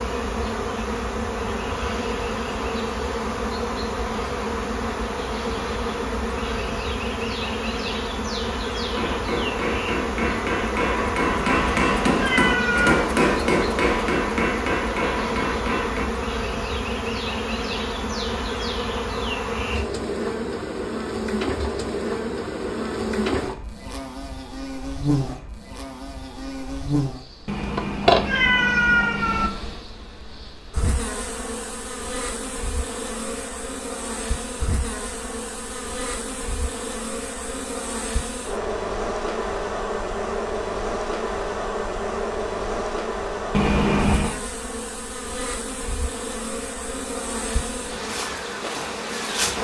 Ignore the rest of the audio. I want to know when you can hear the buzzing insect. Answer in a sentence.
You can hear the buzzing insect from 0.0 to 49.5 s.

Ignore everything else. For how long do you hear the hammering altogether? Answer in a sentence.
You can hear the hammering for 7 seconds altogether.